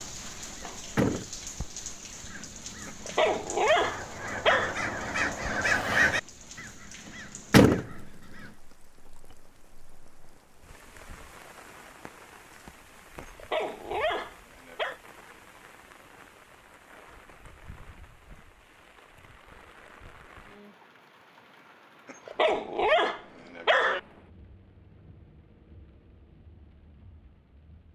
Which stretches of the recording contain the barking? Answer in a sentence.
The barking can be heard from 2.9 to 4.8 s, from 13.2 to 15.0 s and from 22.1 to 24.0 s.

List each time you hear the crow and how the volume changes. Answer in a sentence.
You can hear the crow briefly from 0.6 to 1.4 s; and from 2.2 to 8.0 s, getting louder then quieter.